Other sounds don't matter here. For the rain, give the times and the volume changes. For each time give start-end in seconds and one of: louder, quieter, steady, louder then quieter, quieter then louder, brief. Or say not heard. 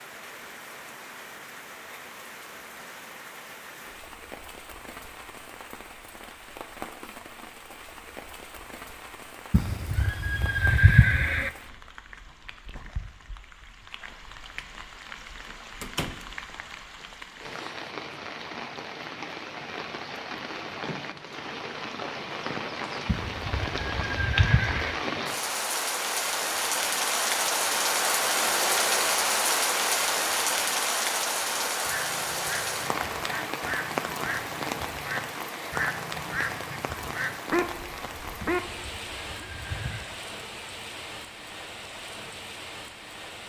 0.0-43.4 louder then quieter.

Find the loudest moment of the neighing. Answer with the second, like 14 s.
11 s.